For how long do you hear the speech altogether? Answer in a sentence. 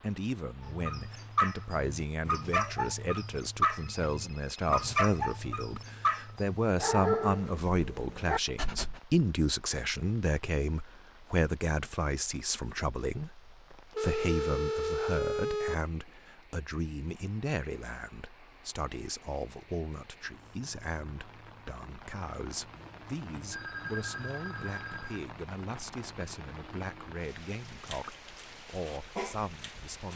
The speech can be heard for 30 seconds in total.